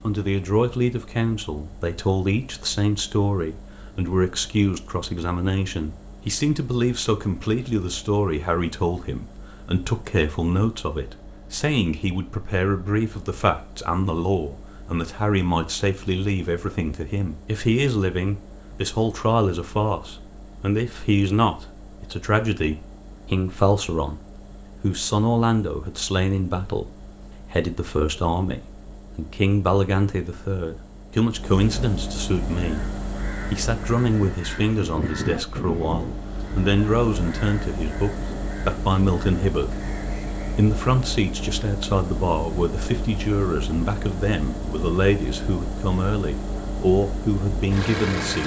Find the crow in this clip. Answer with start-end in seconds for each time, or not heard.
32.5-40.6.